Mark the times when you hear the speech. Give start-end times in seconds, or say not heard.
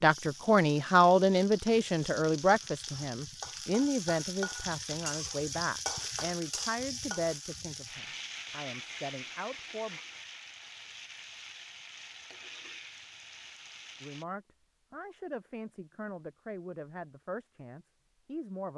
0.0-10.0, 14.0-18.7.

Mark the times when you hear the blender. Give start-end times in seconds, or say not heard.
not heard.